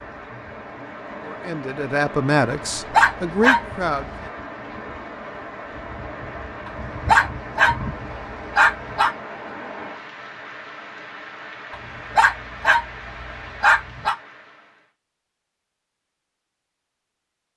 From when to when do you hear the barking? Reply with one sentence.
You can hear the barking from 2.5 to 4.2 s, from 6.7 to 9.1 s and from 11.7 to 14.2 s.